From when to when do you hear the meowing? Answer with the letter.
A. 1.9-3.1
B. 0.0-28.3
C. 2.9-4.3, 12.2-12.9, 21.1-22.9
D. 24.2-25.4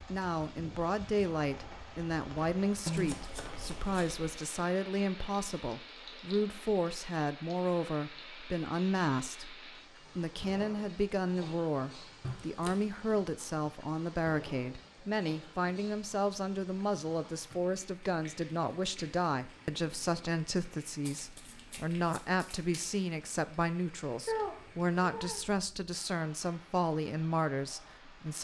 D.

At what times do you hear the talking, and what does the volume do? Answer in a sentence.
The talking can be heard from 0.0 to 28.3 s, at a steady volume.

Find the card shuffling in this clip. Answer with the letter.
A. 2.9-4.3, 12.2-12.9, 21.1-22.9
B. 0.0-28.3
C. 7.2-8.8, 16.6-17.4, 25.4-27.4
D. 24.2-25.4
A.